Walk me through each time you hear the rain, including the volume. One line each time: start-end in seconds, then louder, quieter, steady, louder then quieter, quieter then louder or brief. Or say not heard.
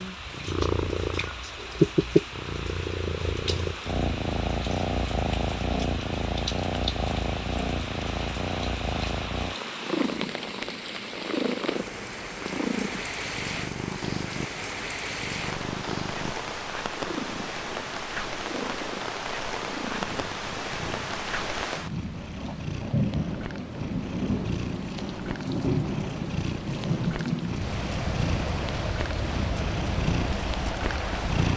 0.0-31.5 louder.